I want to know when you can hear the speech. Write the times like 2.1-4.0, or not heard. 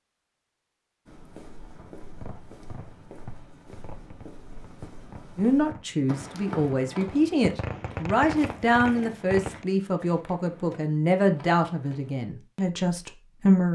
5.3-13.7.